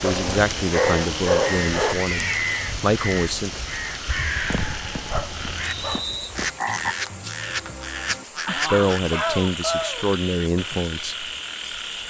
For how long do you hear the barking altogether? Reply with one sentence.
You can hear the barking for 5 seconds altogether.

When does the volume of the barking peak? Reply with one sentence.
The volume of the barking peaks at 1 second.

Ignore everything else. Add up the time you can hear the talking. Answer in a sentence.
You can hear the talking for 6 seconds altogether.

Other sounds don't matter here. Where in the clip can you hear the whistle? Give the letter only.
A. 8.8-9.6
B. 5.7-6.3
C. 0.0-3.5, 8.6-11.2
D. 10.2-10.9
B.